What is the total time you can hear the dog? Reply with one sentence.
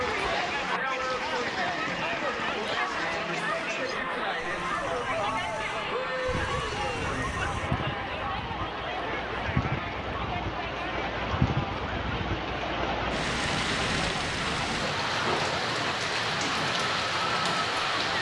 You can hear the dog for 2 seconds altogether.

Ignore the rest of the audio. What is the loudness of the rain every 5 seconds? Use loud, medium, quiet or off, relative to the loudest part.
medium, medium, loud, loud.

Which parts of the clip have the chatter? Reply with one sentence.
You can hear the chatter from 0.0 to 18.1 s.